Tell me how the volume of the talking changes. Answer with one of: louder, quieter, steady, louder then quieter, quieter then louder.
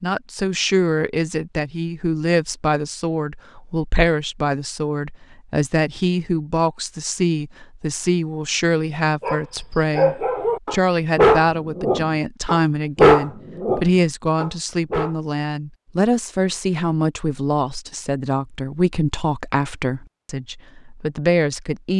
steady.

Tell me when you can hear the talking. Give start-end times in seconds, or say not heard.
0.0-21.9.